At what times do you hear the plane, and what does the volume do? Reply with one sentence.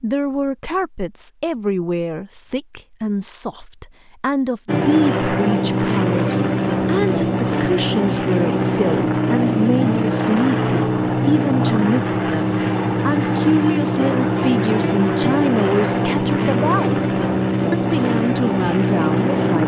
You can hear the plane from 4.7 to 19.6 s, at a steady volume.